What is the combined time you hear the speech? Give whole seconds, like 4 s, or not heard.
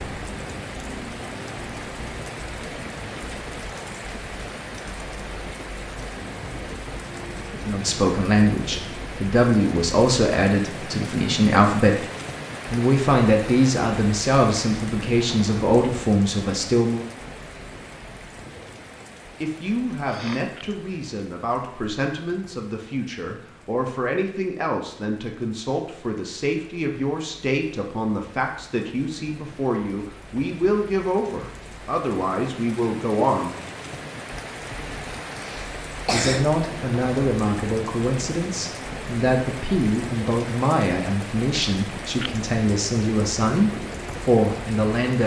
32 s.